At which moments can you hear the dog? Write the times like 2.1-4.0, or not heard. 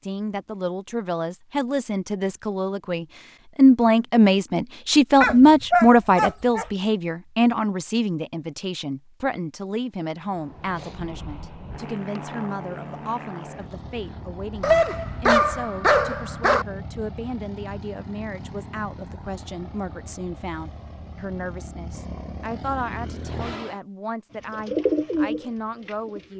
5.2-6.7, 14.6-16.6.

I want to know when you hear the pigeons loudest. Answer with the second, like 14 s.
25 s.